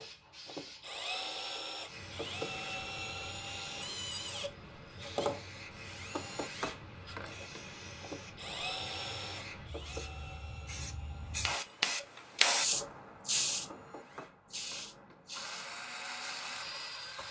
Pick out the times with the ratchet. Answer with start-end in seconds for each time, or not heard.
not heard.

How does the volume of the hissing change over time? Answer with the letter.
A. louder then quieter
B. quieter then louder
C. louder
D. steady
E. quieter
A.